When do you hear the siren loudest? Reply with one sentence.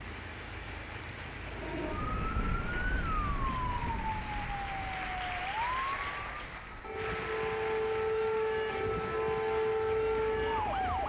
The loudest moment of the siren is at 10 seconds.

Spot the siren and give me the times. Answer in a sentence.
The siren can be heard from 1.5 to 11.0 s.